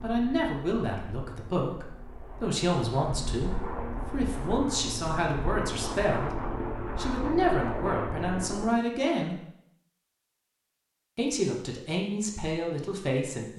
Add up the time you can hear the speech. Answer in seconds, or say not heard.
12 s.